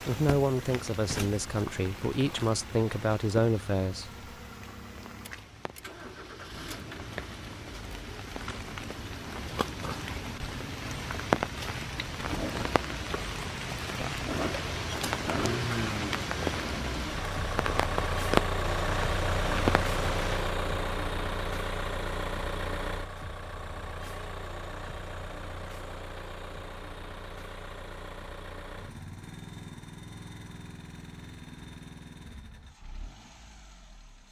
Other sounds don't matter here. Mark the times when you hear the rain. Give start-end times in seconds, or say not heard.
0.0-20.6.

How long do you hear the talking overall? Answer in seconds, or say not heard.
4 s.